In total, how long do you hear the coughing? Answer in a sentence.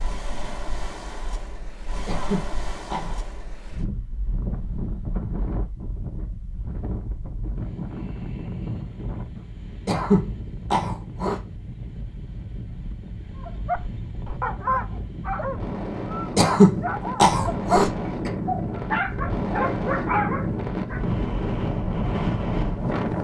You can hear the coughing for 5 seconds altogether.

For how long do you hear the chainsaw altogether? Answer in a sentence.
The chainsaw can't be heard in this clip.